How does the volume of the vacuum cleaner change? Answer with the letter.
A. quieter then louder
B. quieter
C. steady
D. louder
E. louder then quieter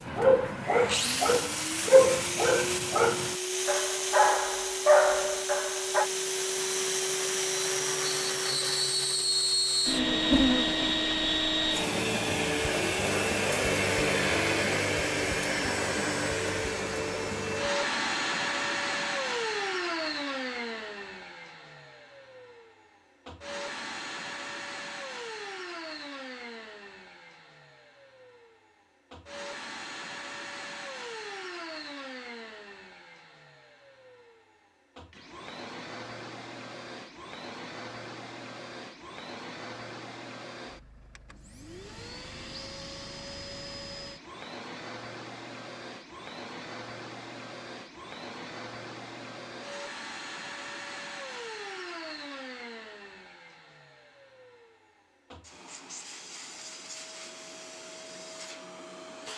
B.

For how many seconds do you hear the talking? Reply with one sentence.
The talking can't be heard in this clip.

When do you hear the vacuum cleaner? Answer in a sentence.
The vacuum cleaner can be heard from 0.0 to 59.3 s.